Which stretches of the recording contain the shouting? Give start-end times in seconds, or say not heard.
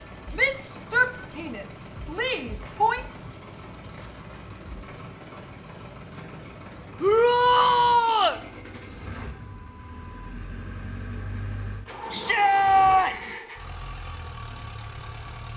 0.3-3.0, 7.0-8.4, 12.1-13.3.